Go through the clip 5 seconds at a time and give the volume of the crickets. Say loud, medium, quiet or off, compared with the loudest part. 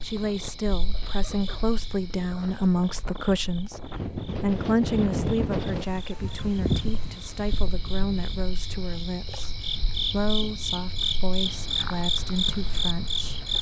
quiet, medium, loud.